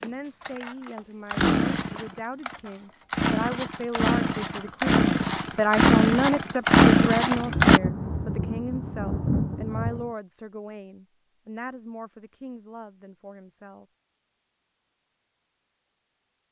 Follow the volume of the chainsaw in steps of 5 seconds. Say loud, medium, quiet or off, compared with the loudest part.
medium, loud, off, off.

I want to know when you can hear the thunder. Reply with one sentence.
The thunder can be heard from 7.3 to 10.1 s.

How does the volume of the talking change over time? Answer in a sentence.
The loudness of the talking goes up, then down.